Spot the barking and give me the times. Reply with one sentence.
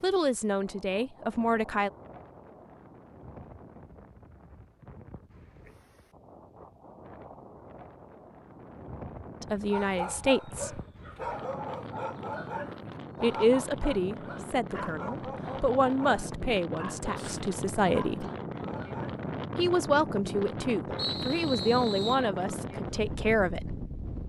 You can hear the barking from 9.7 to 19.2 s.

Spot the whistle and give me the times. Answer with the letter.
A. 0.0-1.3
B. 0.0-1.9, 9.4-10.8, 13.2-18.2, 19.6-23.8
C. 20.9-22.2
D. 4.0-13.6
C.